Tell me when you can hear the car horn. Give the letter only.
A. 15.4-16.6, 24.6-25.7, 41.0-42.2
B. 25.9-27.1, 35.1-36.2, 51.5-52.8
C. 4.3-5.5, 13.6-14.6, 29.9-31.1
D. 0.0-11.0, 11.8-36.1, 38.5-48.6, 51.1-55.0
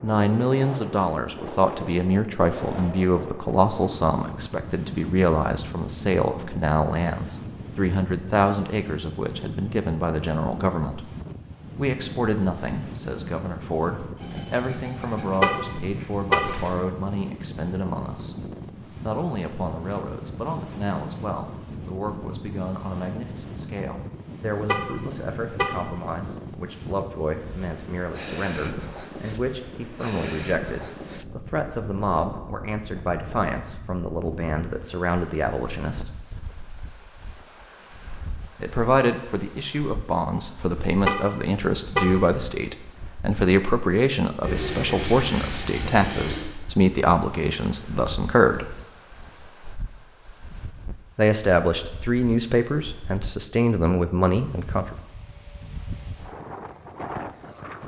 A.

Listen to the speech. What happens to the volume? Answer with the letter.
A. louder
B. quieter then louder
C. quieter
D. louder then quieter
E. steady
B.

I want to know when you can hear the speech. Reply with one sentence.
The speech can be heard from 0.0 to 11.0 s, from 11.8 to 36.1 s, from 38.5 to 48.6 s and from 51.1 to 55.0 s.